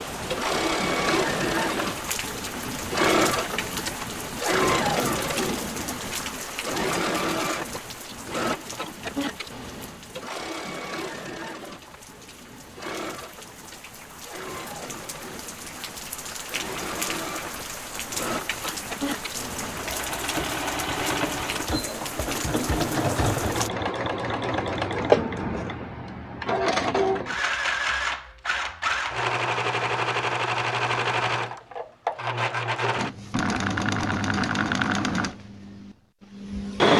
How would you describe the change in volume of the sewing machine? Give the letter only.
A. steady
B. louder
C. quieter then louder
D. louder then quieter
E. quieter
C.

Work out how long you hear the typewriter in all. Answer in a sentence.
You can't hear the typewriter here.